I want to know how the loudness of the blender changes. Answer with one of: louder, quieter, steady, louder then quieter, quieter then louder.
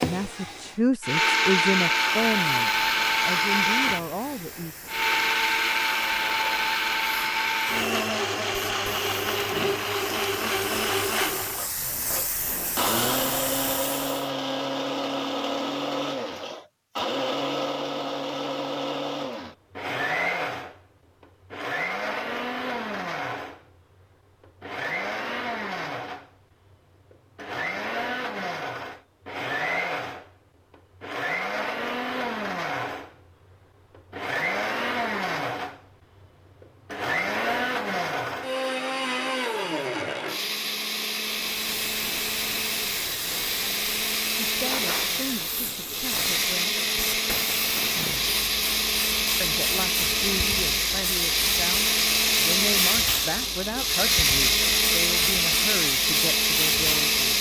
quieter then louder.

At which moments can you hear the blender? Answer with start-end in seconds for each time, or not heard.
0.0-57.3.